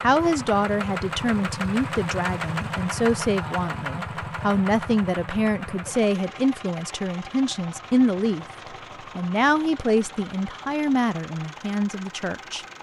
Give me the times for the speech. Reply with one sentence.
The speech can be heard from 0.0 to 8.4 s and from 9.2 to 12.7 s.